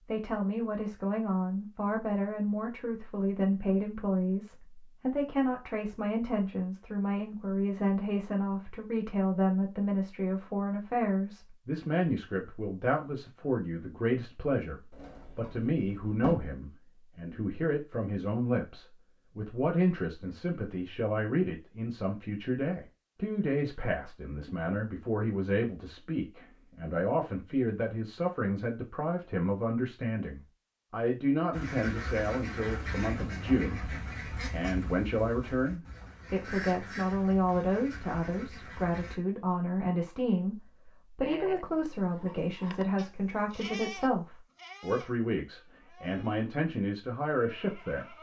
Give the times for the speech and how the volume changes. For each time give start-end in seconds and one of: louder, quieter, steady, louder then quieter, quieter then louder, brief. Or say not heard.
0.1-48.1 steady.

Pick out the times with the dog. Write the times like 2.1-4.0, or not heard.
not heard.